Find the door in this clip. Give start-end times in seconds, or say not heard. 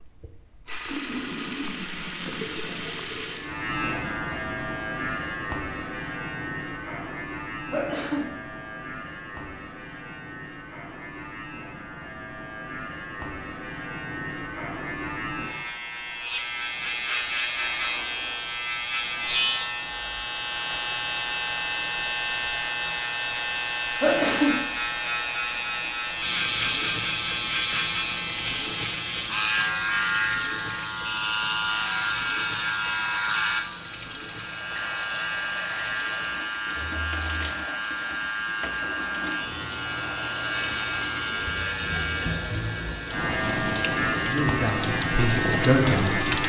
not heard.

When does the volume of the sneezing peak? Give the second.
24 s.